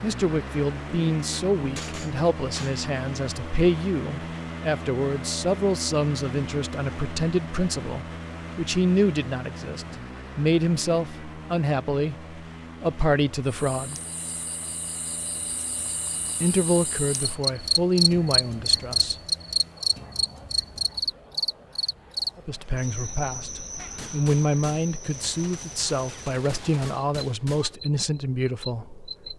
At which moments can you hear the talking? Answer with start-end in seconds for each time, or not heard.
0.0-13.9, 16.4-19.1, 22.4-29.1.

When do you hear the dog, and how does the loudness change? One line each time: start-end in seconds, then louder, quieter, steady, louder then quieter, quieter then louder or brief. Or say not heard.
not heard.